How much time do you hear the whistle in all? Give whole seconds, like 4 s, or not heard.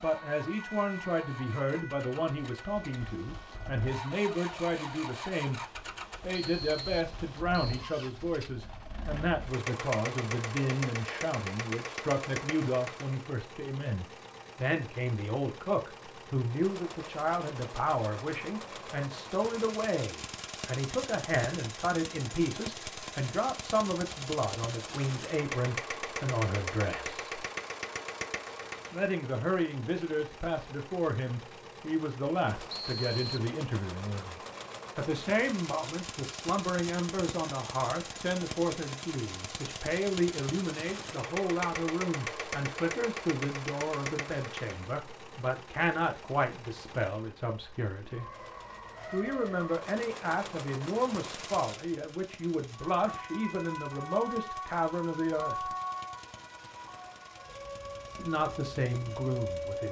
2 s.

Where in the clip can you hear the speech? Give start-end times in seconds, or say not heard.
0.0-5.6, 6.2-27.2, 28.9-48.2, 49.1-55.7, 58.1-59.8.